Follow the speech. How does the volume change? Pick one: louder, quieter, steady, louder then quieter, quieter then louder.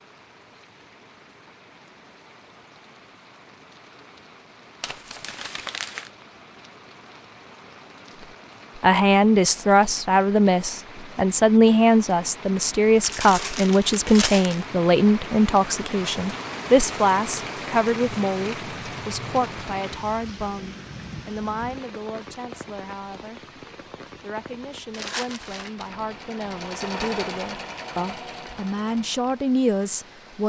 quieter then louder.